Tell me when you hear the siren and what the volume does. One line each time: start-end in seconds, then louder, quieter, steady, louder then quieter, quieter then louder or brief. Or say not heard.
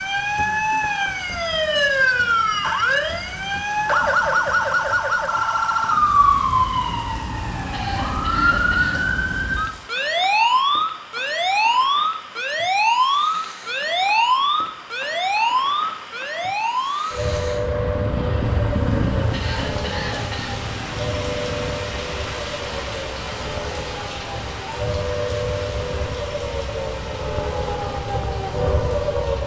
0.0-29.4 quieter.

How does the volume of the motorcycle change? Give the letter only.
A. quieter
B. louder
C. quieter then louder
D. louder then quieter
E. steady
A.